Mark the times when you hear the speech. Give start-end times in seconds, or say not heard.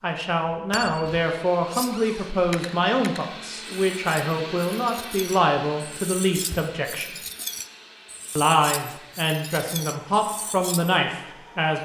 0.0-7.1, 8.3-11.8.